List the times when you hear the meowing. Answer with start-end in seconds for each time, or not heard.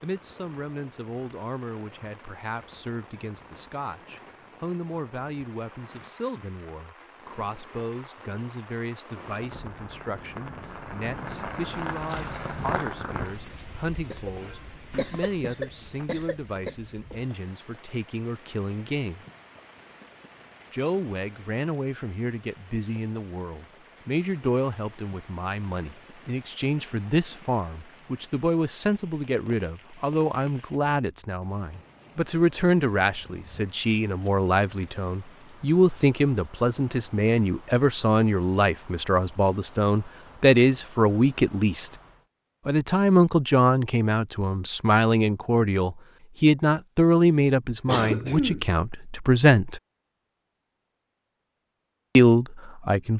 not heard.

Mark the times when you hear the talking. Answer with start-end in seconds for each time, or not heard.
0.0-19.2, 20.7-41.9, 42.6-49.8, 52.1-53.1.